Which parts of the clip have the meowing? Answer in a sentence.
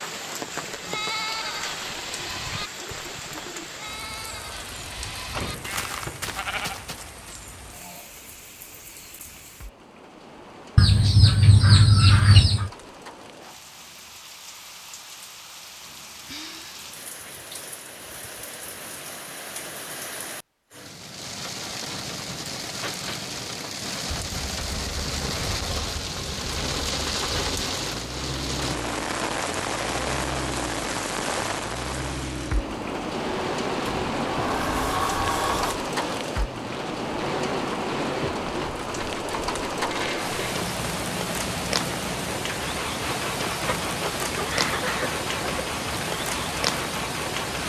The meowing can't be heard in this clip.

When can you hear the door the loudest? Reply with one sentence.
The loudest moment of the door is at 35 seconds.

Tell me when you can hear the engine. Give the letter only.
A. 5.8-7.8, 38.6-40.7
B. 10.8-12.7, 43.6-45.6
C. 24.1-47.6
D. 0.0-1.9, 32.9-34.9
C.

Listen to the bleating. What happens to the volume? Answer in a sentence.
The loudness of the bleating goes down, then up.